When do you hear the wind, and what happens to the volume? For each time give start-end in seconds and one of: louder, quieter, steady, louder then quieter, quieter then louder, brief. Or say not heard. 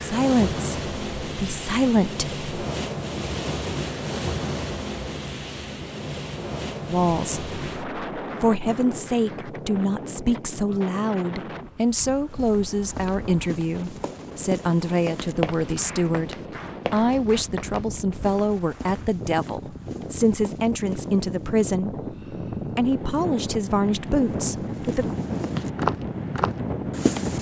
0.0-27.3 quieter then louder.